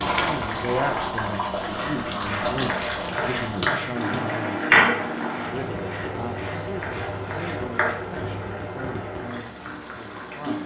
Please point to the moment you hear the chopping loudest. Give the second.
5 s.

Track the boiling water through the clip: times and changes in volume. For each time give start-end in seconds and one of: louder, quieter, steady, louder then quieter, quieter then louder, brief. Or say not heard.
0.0-10.6 quieter.